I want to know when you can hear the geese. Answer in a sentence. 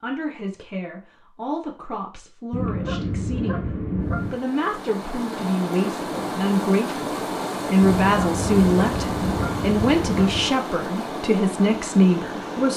You can hear the geese from 2.5 to 4.3 s and from 7.8 to 10.5 s.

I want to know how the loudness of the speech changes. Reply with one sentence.
The volume of the speech goes up.